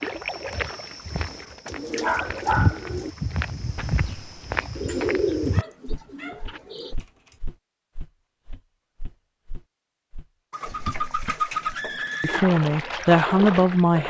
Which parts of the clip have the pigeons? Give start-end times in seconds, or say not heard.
1.6-3.1, 4.8-7.0, 10.5-12.4.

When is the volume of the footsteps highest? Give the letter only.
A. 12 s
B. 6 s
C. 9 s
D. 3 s
D.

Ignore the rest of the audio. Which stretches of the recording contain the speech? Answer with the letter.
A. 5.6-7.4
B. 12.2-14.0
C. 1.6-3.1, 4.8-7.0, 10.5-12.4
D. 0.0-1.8
B.